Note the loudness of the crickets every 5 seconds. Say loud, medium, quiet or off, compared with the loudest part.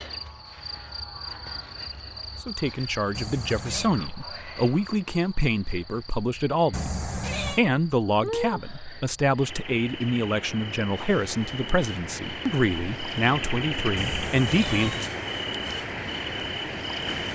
medium, medium, loud, loud.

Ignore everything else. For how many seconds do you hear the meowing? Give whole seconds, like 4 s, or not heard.
3 s.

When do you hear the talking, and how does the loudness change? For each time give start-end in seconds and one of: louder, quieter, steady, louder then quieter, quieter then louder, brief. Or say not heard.
2.4-15.1 steady.